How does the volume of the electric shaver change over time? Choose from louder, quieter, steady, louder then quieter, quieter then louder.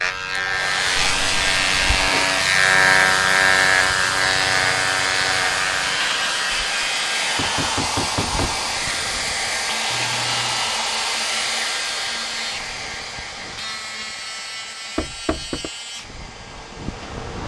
quieter.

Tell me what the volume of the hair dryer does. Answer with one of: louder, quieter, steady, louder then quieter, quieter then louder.
quieter.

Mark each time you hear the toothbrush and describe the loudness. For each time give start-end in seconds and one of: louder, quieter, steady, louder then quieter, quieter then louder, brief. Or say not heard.
not heard.